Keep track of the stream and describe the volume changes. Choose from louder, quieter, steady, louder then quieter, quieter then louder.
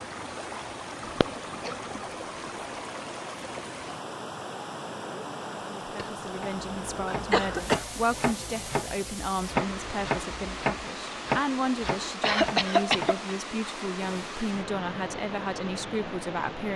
steady.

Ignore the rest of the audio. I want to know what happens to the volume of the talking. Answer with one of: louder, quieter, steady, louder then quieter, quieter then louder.
steady.